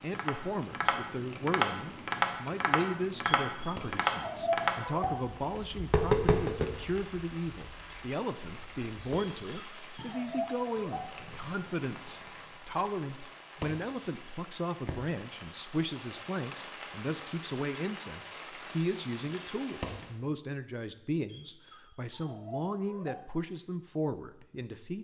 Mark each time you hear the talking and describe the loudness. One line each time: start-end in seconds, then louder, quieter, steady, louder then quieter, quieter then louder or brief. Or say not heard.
0.0-24.9 steady.